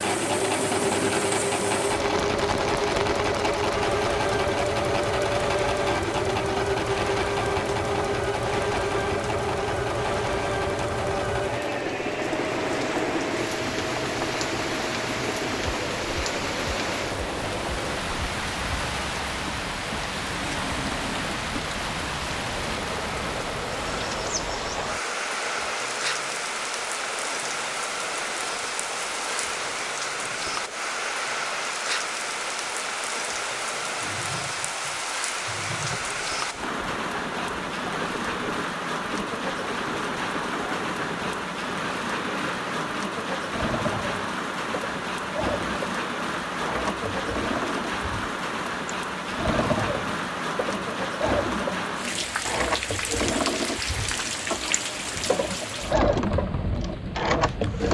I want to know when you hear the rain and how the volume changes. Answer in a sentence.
The rain can be heard from 0.0 to 57.8 s, at a steady volume.